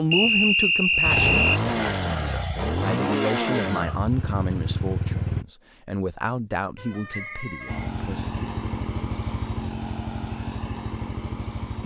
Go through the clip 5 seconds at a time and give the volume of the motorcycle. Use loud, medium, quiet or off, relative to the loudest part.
loud, loud, medium.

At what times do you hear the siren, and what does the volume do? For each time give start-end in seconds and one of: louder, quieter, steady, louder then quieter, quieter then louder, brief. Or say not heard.
not heard.